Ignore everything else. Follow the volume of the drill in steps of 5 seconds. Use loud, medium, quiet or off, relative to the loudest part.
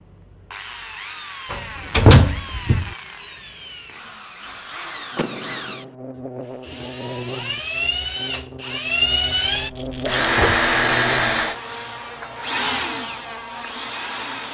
quiet, loud, loud.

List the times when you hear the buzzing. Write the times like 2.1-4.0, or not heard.
5.1-14.4.